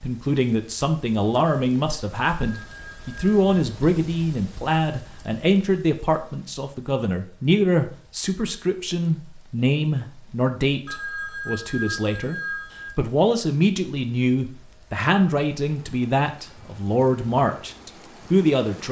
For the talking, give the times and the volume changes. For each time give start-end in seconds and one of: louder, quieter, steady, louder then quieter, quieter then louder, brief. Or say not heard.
0.0-18.8 steady.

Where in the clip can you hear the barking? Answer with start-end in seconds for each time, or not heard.
not heard.